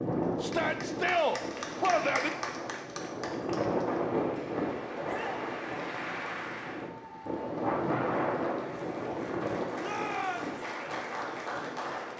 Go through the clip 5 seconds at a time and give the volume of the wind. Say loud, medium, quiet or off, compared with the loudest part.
loud, loud, medium.